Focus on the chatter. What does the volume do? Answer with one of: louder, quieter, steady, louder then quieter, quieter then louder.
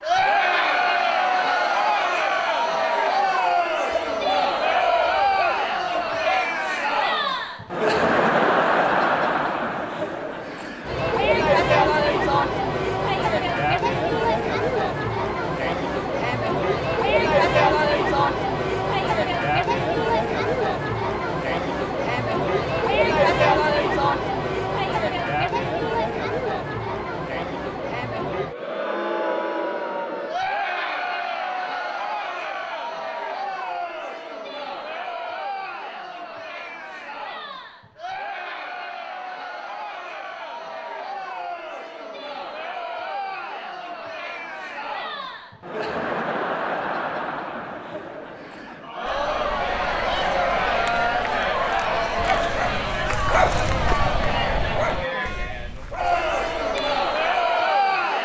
quieter then louder.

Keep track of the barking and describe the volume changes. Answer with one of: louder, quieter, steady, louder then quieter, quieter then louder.
louder then quieter.